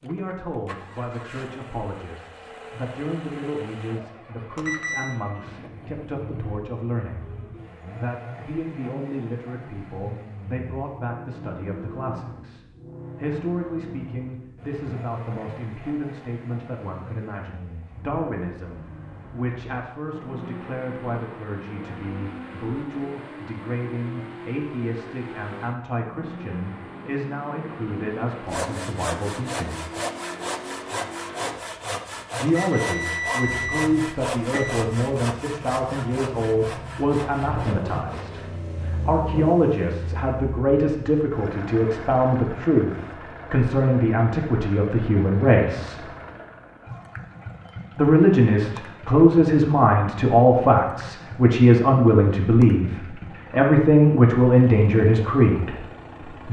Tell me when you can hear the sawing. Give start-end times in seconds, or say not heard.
28.4-38.6.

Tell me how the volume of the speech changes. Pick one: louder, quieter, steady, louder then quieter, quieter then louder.
louder.